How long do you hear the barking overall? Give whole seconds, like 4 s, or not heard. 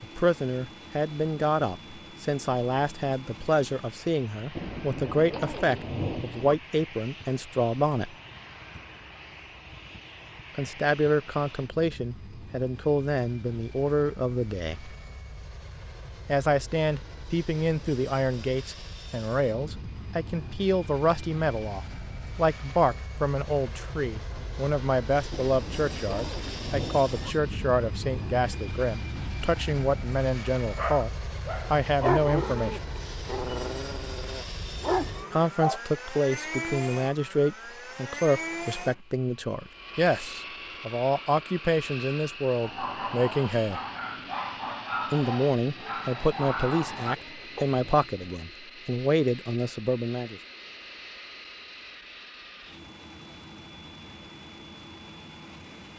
10 s.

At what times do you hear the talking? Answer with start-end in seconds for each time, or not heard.
0.0-8.2, 10.6-14.9, 16.2-31.1, 31.7-32.8, 35.3-43.8, 45.1-50.4.